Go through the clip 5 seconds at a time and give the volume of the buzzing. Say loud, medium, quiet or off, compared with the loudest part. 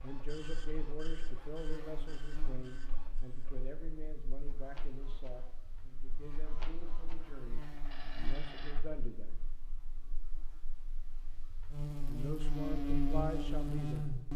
quiet, quiet, loud.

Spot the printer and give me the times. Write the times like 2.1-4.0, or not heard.
0.0-8.9.